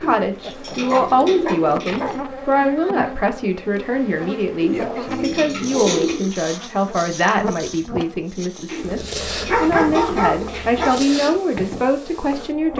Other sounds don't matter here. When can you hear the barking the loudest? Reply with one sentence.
The loudest moment of the barking is at 10 seconds.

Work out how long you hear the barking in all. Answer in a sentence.
The barking can be heard for 5 seconds in total.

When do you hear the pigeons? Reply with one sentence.
You can hear the pigeons from 0.0 to 2.2 s, from 4.6 to 6.3 s and from 8.7 to 10.8 s.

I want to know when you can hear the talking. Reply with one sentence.
The talking can be heard from 0.0 to 9.0 s and from 9.6 to 12.7 s.